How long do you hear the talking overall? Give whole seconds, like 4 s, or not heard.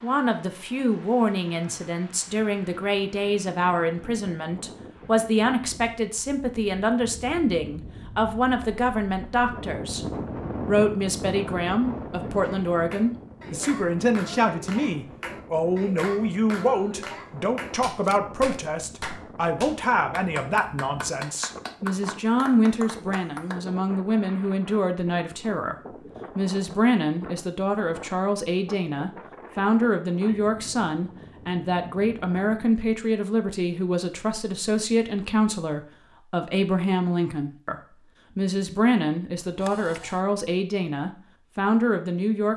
41 s.